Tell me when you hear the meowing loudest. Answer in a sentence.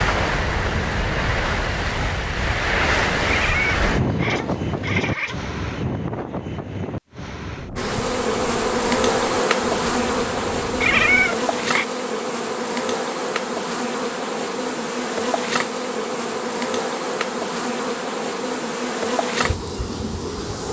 The volume of the meowing peaks at 11 seconds.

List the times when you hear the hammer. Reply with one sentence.
The hammer can't be heard in this clip.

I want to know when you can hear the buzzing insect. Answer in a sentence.
You can hear the buzzing insect from 7.8 to 20.6 s.